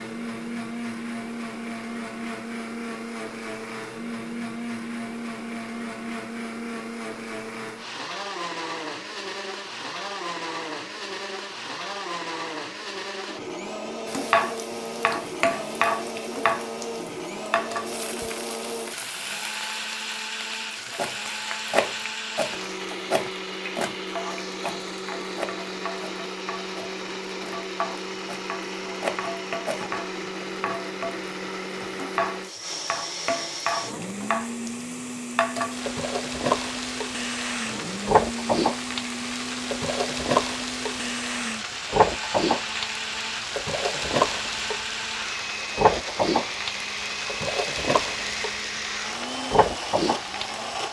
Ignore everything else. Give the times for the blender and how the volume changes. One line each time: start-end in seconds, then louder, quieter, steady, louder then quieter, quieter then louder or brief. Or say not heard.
0.0-50.8 steady.